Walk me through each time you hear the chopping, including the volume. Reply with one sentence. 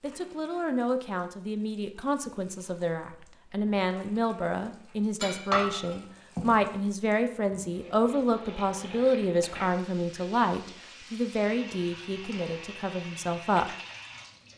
The chopping can't be heard in this clip.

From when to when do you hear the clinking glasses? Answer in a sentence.
You can hear the clinking glasses from 5.2 to 6.5 s.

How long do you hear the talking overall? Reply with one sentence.
You can hear the talking for 14 seconds altogether.